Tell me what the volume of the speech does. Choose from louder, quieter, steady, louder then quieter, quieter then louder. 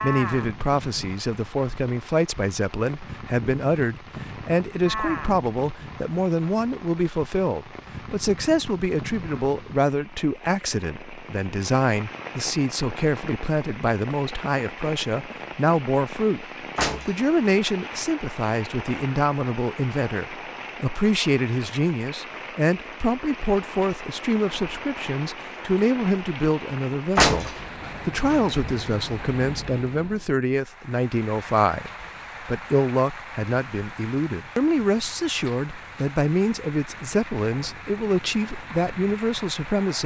steady.